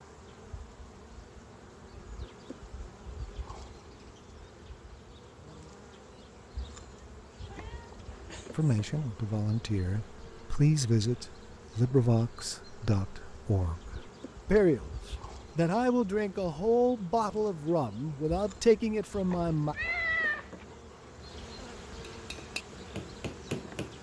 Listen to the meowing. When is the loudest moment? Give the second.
20 s.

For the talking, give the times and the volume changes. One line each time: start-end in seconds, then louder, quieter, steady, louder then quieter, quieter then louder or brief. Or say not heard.
8.6-19.8 steady.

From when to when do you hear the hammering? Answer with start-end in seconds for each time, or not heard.
22.1-23.9.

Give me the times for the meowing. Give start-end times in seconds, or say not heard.
7.5-8.7, 19.3-20.6.